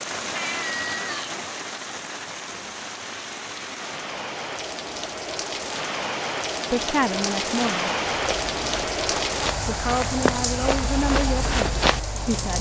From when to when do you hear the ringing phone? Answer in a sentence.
You can't hear the ringing phone here.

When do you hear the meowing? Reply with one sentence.
The meowing can be heard from 0.3 to 1.4 s.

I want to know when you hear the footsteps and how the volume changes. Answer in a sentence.
You can hear the footsteps from 8.1 to 12.5 s, getting louder.